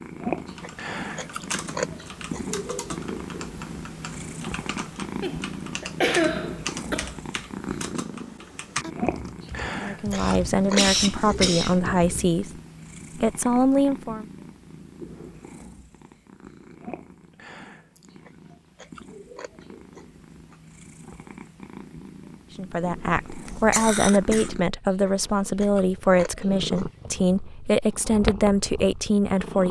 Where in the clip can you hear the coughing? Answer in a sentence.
You can hear the coughing from 5.2 to 7.2 s, from 10.2 to 11.8 s and from 23.4 to 24.5 s.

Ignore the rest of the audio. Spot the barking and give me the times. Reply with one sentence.
The barking can't be heard in this clip.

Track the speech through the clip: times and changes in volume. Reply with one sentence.
The speech can be heard briefly from 9.8 to 12.5 s; briefly from 13.2 to 14.2 s; and from 22.6 to 29.6 s, at a steady volume.